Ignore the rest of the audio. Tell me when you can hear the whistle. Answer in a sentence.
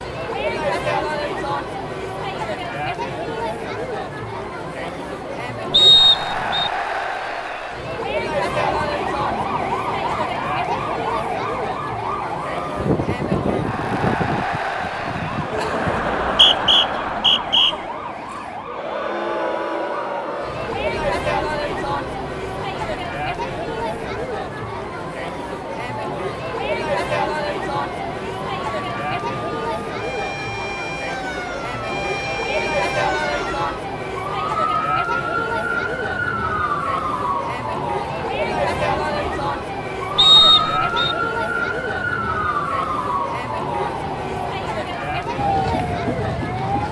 The whistle can be heard from 5.7 to 6.7 s, from 16.2 to 17.8 s and from 40.1 to 41.1 s.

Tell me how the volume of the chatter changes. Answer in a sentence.
The volume of the chatter stays about the same.